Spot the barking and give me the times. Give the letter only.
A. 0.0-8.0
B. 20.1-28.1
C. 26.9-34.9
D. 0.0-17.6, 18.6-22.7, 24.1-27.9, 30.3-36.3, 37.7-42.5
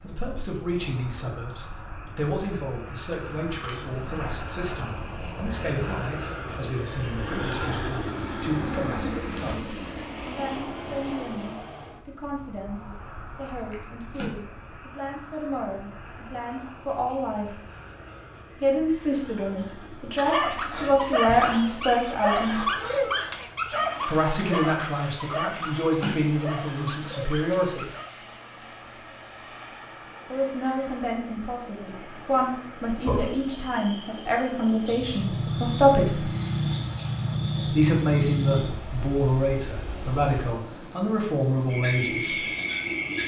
B.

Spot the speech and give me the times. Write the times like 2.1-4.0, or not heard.
0.0-17.6, 18.6-22.7, 24.1-27.9, 30.3-36.3, 37.7-42.5.